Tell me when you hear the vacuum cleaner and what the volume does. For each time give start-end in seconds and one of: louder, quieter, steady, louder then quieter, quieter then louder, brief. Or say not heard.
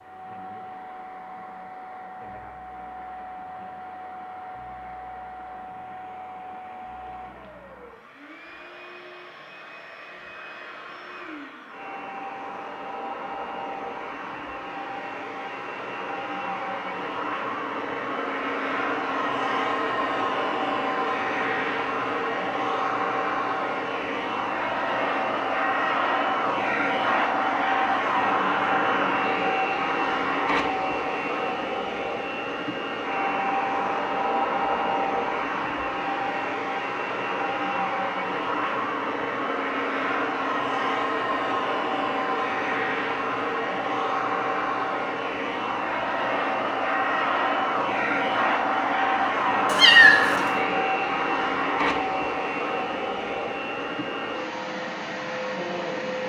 0.0-56.2 louder.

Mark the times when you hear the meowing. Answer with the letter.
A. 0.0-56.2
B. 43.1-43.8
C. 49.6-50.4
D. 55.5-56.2
C.